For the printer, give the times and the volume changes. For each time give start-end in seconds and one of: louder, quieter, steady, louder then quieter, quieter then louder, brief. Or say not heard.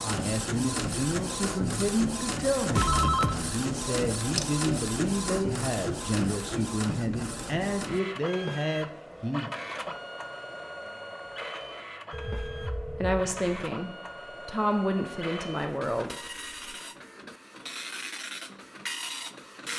0.0-19.7 quieter.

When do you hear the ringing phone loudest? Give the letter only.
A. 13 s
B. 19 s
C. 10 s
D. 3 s
D.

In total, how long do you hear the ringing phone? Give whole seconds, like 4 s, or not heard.
2 s.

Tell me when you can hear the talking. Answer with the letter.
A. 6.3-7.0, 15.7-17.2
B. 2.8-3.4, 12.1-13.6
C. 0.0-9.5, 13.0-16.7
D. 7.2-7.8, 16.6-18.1
C.